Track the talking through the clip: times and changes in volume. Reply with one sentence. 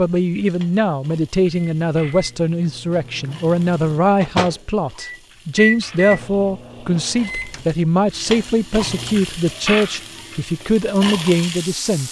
You can hear the talking from 0.0 to 12.0 s, at a steady volume.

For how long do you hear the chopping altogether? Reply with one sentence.
You can't hear the chopping here.